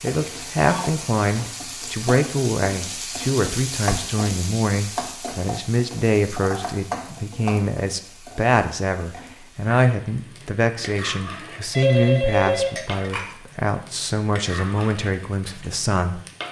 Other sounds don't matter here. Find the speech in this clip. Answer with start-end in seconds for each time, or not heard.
0.0-16.2.